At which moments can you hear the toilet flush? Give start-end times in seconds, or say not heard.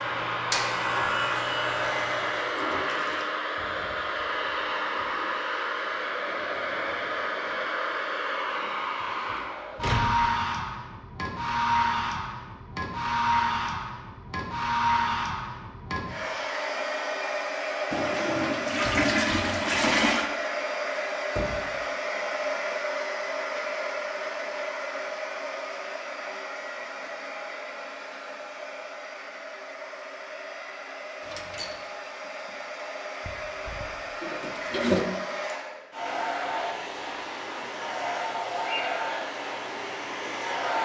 2.4-3.3, 17.9-20.3, 33.2-35.0.